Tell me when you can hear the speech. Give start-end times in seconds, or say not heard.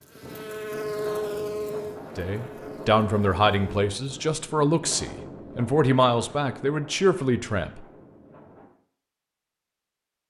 2.1-7.8.